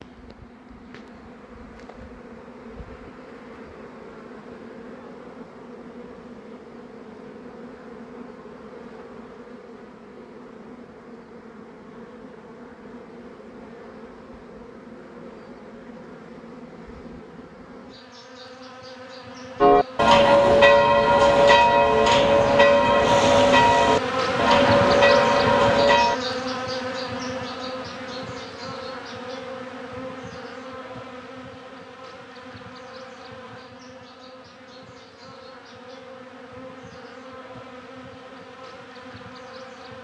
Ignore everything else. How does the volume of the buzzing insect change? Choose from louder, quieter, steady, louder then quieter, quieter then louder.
louder then quieter.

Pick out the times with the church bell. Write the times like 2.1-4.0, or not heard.
19.6-26.2.